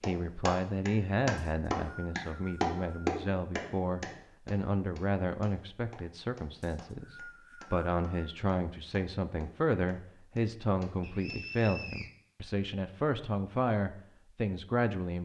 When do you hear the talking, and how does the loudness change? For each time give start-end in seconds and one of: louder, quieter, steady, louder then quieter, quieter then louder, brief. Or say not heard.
0.1-15.2 steady.